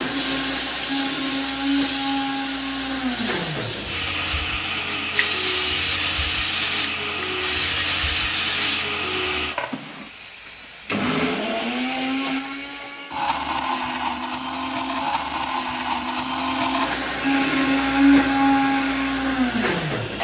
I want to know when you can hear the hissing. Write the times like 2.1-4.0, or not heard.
0.0-13.1, 15.1-20.1.